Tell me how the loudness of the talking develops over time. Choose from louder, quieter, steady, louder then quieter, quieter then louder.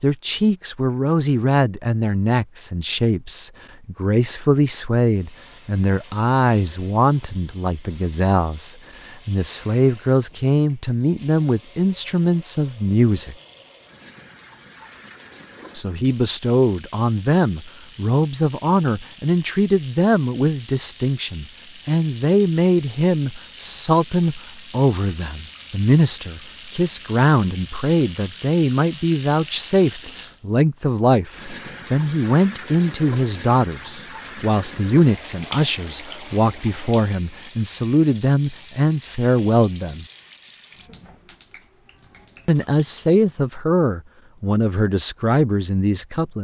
steady.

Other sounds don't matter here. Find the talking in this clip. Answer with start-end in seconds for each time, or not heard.
0.0-13.3, 15.8-40.0, 42.5-46.4.